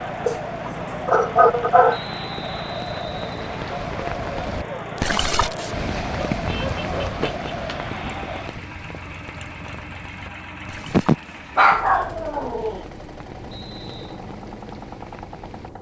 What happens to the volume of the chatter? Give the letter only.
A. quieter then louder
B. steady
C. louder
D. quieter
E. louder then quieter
B.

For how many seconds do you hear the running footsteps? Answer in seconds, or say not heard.
not heard.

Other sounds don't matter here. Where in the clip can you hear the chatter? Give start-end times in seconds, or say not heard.
0.0-8.6.